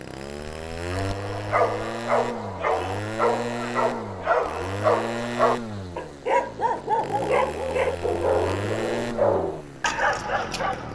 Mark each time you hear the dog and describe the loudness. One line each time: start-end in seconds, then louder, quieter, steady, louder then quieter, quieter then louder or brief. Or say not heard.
0.9-10.9 steady.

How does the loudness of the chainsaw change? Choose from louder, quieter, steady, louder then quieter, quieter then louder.
steady.